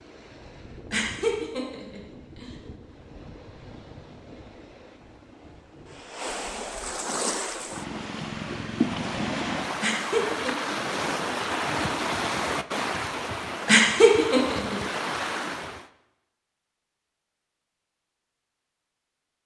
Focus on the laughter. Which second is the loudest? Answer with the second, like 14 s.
14 s.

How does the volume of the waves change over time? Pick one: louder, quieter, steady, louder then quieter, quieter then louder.
louder.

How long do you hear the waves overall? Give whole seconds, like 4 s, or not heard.
16 s.